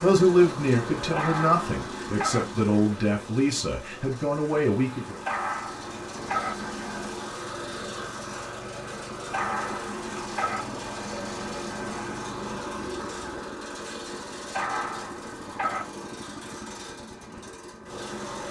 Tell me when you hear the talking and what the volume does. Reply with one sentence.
You can hear the talking from 0.0 to 5.2 s, at a steady volume.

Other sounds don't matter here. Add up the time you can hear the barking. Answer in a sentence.
The barking can be heard for 5 seconds in total.